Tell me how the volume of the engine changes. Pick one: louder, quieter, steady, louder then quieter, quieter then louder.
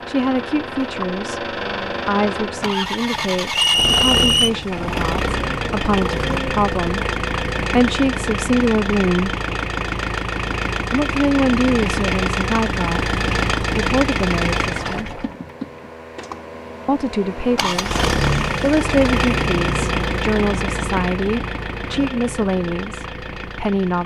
steady.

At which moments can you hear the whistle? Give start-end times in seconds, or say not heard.
3.5-4.5.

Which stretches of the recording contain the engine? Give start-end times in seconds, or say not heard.
0.0-24.0.